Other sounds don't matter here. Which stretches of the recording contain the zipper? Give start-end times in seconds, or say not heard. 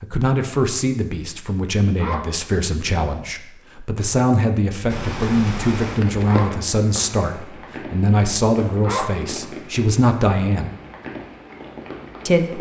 2.0-2.5, 6.2-6.7, 8.8-9.3.